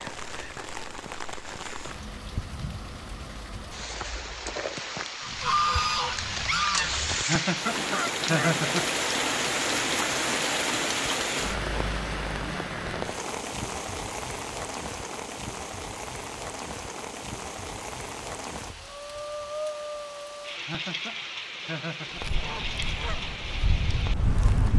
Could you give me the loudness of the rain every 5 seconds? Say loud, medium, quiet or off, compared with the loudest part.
medium, loud, loud, medium, medium.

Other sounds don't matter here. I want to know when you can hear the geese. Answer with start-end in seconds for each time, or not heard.
5.2-8.7, 22.1-24.7.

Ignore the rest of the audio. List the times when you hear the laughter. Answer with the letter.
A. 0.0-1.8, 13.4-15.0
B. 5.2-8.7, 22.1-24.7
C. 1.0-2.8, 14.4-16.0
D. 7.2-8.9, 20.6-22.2
D.